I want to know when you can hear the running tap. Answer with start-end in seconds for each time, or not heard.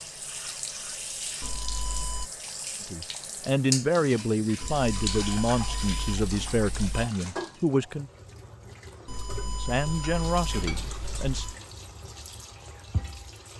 0.0-13.5.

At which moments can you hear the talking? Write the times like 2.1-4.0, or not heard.
2.8-8.1, 9.4-11.4.